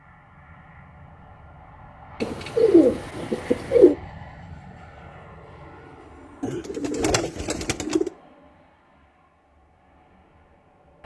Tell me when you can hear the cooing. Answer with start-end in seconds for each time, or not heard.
2.2-4.0, 6.4-8.1.